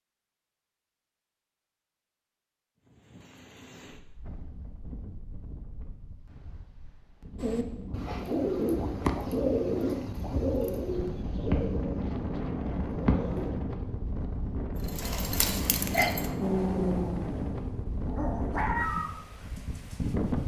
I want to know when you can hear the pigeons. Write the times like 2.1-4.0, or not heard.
7.4-13.5.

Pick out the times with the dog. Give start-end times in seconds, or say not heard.
14.8-20.1.